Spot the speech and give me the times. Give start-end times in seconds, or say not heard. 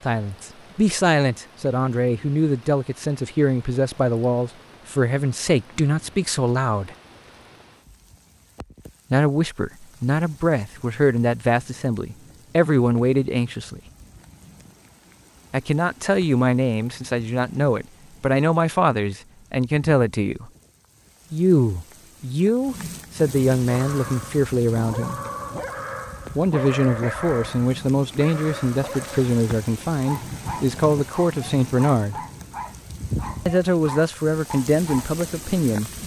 0.1-7.0, 9.1-13.8, 15.5-20.5, 21.3-25.2, 26.4-32.2, 33.5-35.9.